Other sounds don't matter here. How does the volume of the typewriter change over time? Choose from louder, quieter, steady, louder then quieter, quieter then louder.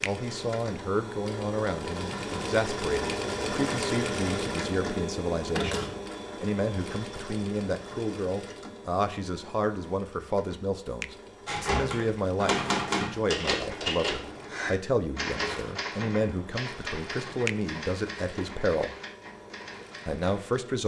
quieter.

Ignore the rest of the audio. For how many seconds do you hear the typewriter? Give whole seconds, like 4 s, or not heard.
9 s.